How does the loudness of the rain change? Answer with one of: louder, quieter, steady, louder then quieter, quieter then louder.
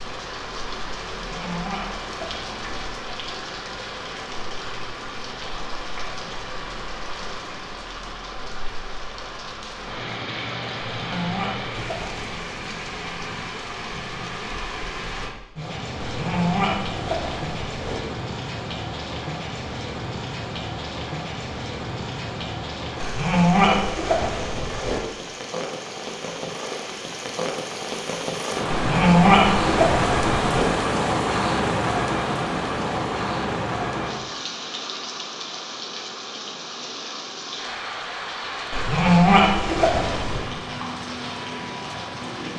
louder then quieter.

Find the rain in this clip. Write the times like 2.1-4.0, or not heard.
0.0-42.5.